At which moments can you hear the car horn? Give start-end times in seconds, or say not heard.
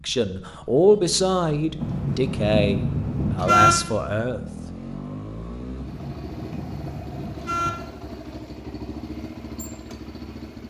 1.8-3.8, 5.8-7.7.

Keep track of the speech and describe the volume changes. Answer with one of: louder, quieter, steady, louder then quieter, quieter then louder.
quieter.